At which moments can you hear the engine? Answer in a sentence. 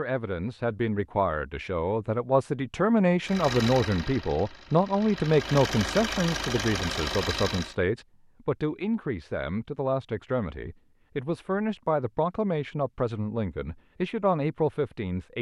The engine can be heard from 3.2 to 7.8 s.